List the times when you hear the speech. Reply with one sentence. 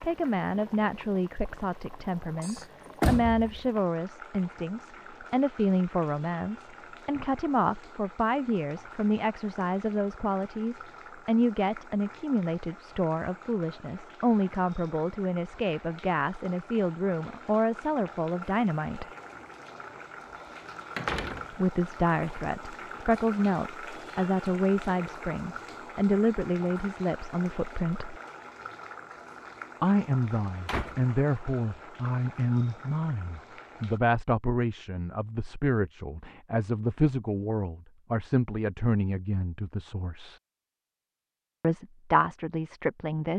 The speech can be heard from 0.0 to 19.1 s, from 21.5 to 28.2 s, from 29.8 to 40.4 s and from 41.6 to 43.3 s.